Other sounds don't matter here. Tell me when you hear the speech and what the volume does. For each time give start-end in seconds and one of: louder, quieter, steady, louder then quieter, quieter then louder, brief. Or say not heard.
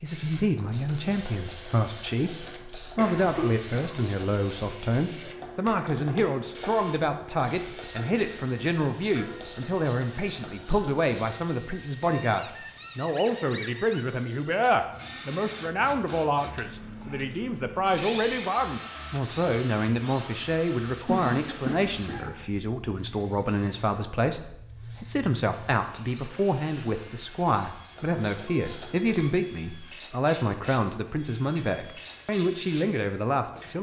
0.0-33.7 steady.